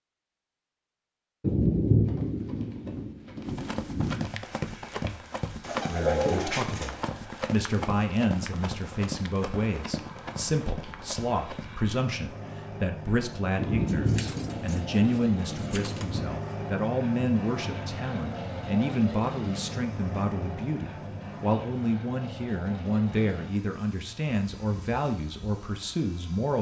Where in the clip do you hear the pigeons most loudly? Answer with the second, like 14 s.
6 s.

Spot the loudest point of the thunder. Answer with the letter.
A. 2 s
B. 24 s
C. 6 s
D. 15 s
A.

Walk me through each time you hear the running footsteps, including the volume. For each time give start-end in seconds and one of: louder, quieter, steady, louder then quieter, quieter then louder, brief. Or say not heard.
2.0-11.8 louder then quieter.